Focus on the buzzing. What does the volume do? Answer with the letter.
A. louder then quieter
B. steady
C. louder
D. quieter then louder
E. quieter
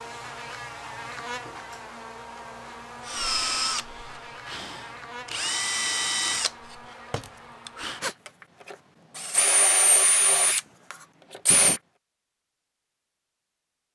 E.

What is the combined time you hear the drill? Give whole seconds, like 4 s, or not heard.
9 s.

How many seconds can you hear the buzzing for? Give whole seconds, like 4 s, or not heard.
8 s.